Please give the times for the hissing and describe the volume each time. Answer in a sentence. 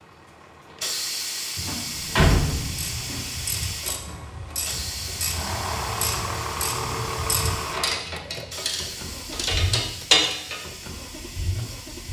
You can hear the hissing from 0.0 to 12.0 s, getting quieter.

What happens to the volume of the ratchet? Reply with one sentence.
The volume of the ratchet goes up.